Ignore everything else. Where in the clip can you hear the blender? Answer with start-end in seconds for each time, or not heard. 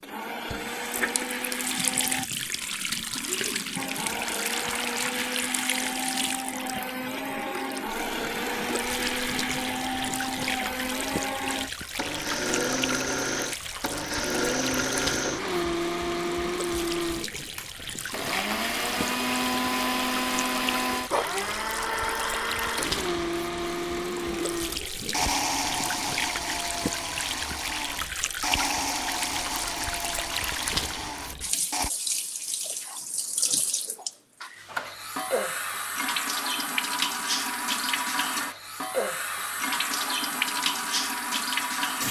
0.0-2.2, 3.8-31.9.